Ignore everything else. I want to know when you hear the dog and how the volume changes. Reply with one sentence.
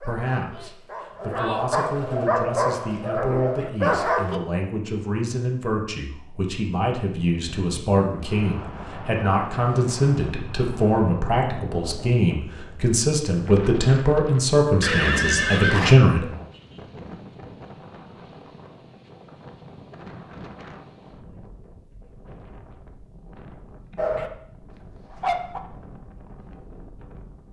You can hear the dog from 0.0 to 4.4 s, getting louder; and briefly from 23.9 to 25.6 s.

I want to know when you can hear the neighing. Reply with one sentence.
The neighing can be heard from 14.8 to 15.9 s.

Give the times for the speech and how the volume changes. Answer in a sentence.
You can hear the speech from 0.0 to 16.2 s, getting louder.